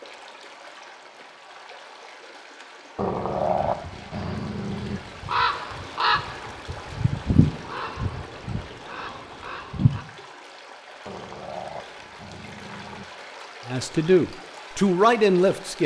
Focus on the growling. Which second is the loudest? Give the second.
4 s.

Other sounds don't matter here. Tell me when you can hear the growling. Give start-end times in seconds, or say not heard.
3.0-5.0, 11.1-13.1.